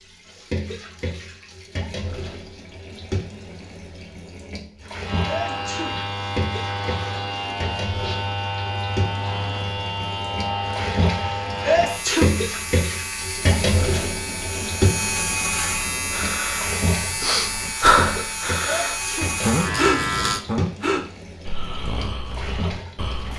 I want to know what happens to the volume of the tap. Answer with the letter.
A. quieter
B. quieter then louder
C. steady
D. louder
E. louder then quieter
E.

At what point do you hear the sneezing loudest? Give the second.
12 s.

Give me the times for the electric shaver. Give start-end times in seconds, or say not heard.
5.0-20.4.